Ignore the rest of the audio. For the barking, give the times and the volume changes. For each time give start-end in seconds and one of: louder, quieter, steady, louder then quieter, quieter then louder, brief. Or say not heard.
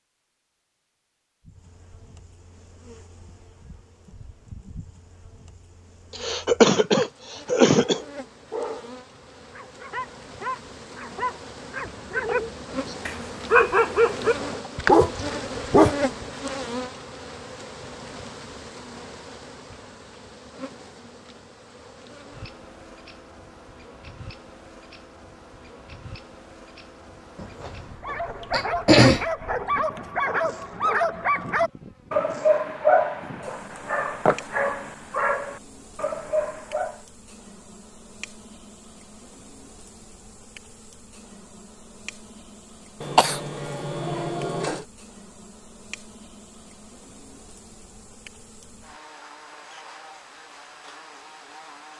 7.7-16.2 louder
28.0-37.0 louder then quieter.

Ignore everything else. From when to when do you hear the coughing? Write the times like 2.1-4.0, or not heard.
6.2-8.0, 27.4-29.2, 43.0-44.9.